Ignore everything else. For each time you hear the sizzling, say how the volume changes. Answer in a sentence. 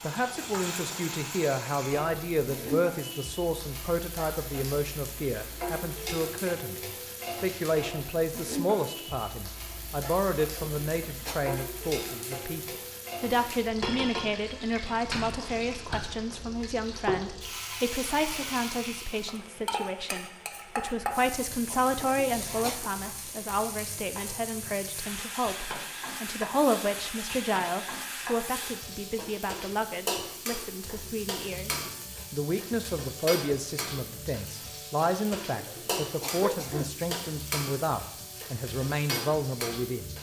You can hear the sizzling from 0.0 to 40.1 s, at a steady volume.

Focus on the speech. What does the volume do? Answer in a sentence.
The loudness of the speech stays about the same.